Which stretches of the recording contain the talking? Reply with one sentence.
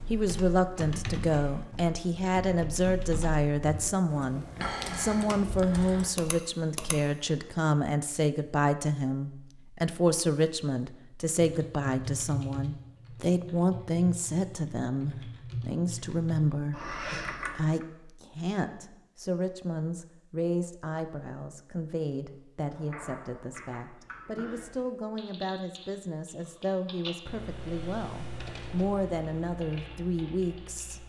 The talking can be heard from 0.1 to 31.0 s.